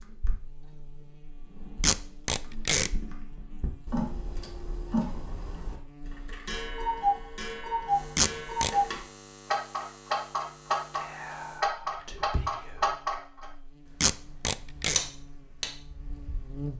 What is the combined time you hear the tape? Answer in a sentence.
You can hear the tape for 3 seconds altogether.